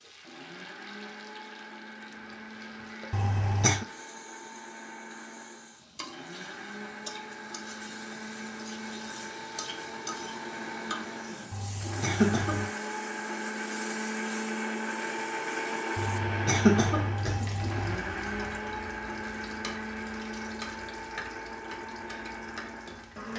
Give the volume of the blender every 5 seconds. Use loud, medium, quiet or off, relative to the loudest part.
medium, medium, loud, loud, medium.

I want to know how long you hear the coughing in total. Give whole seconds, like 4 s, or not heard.
4 s.